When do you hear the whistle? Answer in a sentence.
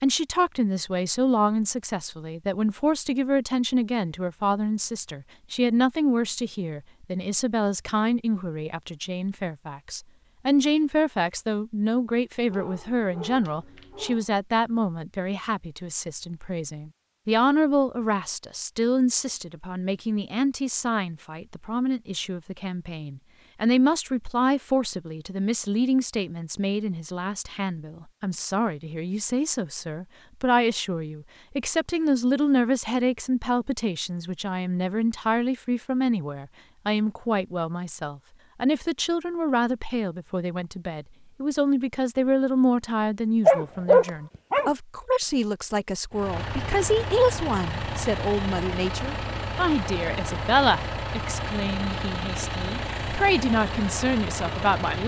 You can't hear the whistle here.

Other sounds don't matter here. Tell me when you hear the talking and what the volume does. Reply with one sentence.
You can hear the talking from 0.0 to 55.0 s, at a steady volume.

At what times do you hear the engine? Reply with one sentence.
You can hear the engine from 46.1 to 55.0 s.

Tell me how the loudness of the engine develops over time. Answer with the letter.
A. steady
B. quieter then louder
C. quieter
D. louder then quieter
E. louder
A.